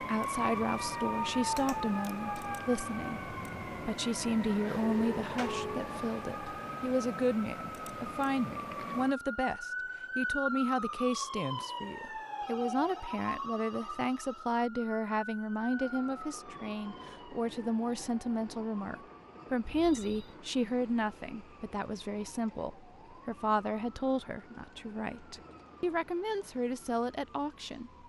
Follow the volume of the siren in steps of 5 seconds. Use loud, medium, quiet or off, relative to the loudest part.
loud, loud, loud, medium, quiet, quiet.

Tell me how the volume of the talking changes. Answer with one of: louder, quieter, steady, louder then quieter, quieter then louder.
steady.